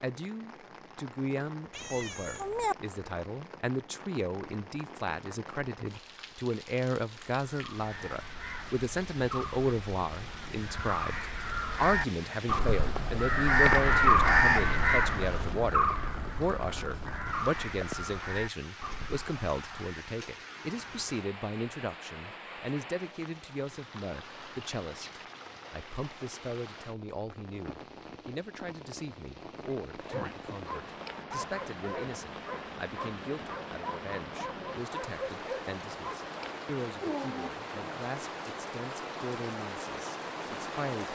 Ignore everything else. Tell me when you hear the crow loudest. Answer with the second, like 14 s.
14 s.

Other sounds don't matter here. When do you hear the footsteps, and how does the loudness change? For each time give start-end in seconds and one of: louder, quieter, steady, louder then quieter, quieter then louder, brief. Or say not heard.
not heard.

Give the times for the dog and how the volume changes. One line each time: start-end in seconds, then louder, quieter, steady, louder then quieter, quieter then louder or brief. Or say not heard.
29.9-37.5 steady.